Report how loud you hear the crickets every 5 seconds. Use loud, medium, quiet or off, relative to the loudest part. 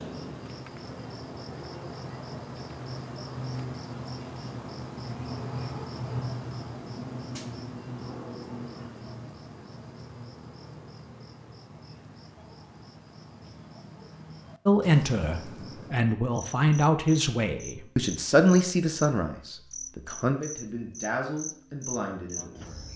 loud, loud, medium, medium, medium.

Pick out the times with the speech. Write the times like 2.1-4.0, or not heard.
14.7-22.9.